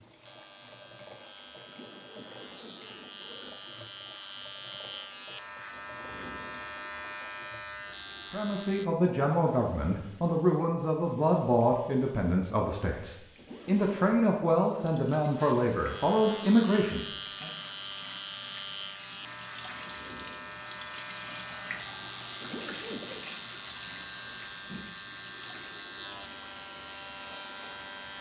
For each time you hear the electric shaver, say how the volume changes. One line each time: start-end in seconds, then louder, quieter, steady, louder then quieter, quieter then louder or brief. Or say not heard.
0.0-8.8 louder
15.3-28.1 steady.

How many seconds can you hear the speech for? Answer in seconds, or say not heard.
9 s.